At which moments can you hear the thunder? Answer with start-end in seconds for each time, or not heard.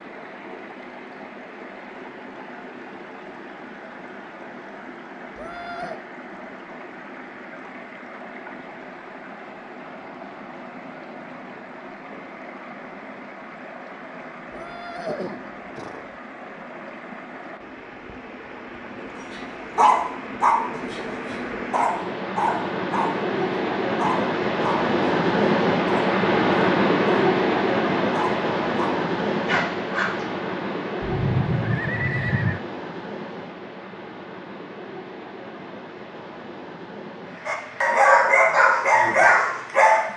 not heard.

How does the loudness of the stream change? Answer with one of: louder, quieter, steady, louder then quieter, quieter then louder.
louder then quieter.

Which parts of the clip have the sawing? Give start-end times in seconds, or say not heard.
not heard.